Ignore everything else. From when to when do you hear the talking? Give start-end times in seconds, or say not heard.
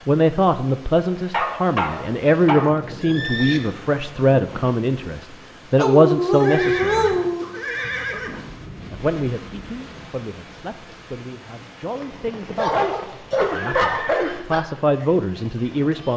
0.1-7.2, 8.9-16.1.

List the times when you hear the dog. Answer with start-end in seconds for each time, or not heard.
1.1-2.8, 5.8-7.5, 12.6-14.7.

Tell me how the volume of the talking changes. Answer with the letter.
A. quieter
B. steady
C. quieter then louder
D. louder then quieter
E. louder
C.